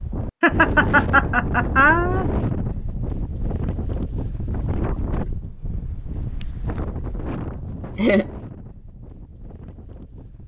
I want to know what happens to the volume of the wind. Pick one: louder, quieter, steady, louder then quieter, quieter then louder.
quieter.